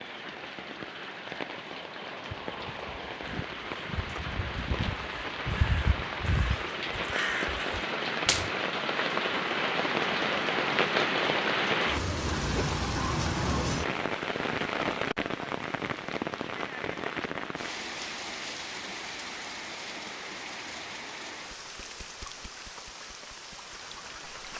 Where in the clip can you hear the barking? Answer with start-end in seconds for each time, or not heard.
not heard.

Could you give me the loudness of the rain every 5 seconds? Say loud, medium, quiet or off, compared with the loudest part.
medium, loud, loud, medium, quiet.